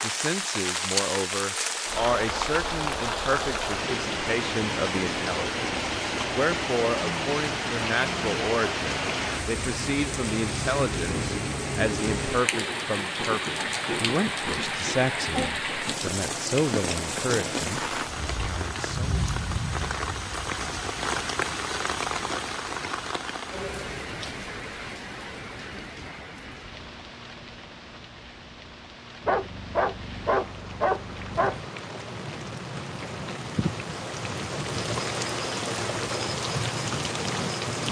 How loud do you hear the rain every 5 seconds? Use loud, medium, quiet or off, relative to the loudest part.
loud, loud, loud, loud, loud, quiet, medium, loud.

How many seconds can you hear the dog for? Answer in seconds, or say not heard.
2 s.